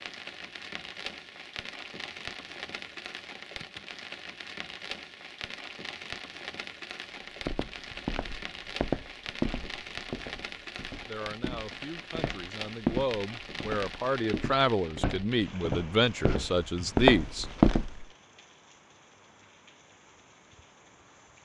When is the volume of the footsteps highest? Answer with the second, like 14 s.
18 s.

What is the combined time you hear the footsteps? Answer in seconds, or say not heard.
11 s.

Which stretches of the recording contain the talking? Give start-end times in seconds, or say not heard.
11.1-17.4.